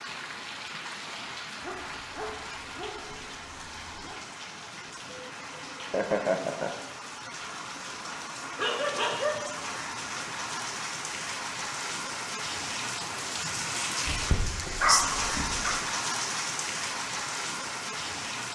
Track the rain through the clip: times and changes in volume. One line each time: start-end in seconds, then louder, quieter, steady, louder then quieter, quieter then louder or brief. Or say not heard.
0.0-18.5 louder.